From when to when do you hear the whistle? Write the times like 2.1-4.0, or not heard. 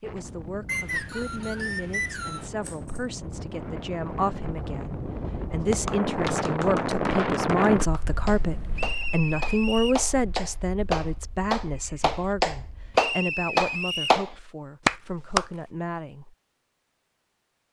0.7-2.5, 8.8-10.1, 12.9-14.2.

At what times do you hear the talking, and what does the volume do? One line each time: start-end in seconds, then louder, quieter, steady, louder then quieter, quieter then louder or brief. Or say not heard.
0.0-16.4 louder then quieter.